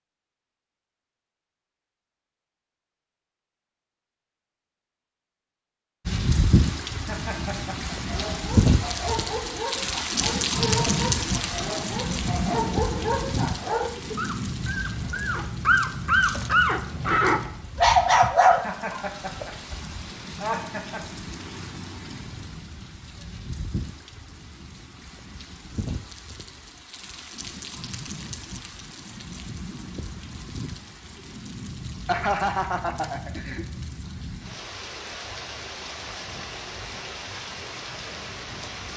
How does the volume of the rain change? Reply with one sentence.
The loudness of the rain goes down.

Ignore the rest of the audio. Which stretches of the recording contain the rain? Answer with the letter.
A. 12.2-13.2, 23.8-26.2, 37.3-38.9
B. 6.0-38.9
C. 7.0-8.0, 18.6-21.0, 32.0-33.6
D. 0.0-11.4
B.